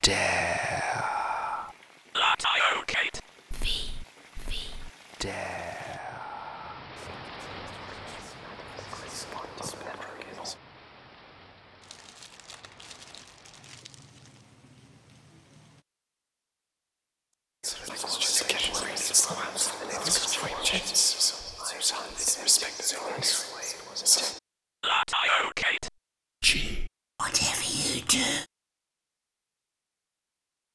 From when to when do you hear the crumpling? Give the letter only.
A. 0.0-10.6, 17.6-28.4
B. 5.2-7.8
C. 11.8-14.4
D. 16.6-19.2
C.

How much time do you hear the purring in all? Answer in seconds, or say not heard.
not heard.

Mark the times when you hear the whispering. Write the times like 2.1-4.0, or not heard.
0.0-10.6, 17.6-28.4.